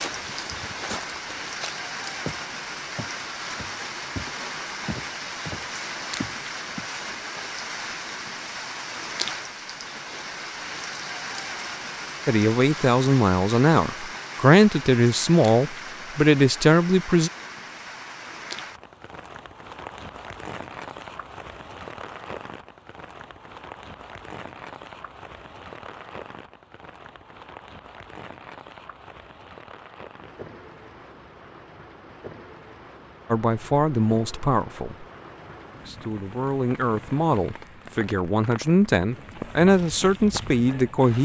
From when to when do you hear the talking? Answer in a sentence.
The talking can be heard from 12.2 to 17.3 s, from 33.3 to 35.0 s and from 35.8 to 41.2 s.